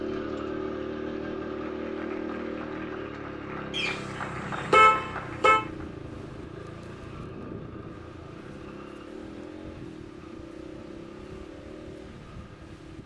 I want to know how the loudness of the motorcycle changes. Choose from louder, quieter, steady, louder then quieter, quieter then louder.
quieter.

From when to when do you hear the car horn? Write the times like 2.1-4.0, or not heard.
3.7-5.6.